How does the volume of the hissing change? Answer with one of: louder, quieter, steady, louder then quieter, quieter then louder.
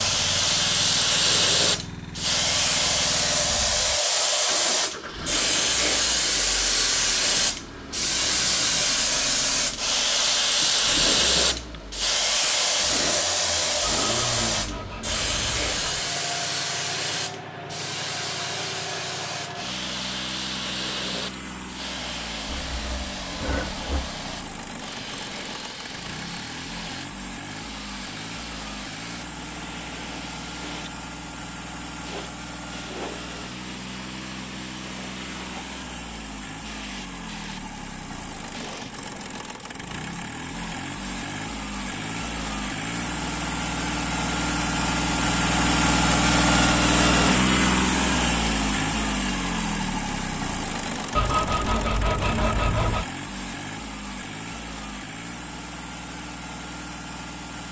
quieter.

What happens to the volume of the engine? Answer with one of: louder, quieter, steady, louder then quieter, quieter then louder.
louder.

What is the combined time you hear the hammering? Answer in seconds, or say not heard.
not heard.